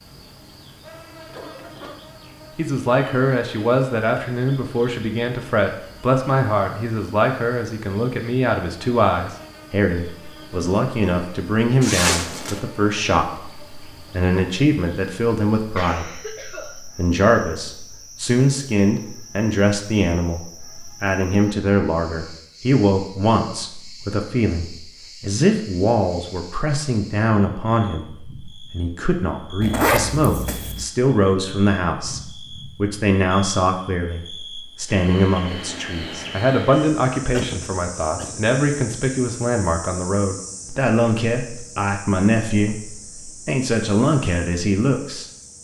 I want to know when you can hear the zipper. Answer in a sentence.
The zipper can be heard from 11.8 to 12.6 s and from 29.6 to 30.9 s.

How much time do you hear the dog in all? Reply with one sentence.
You can't hear the dog here.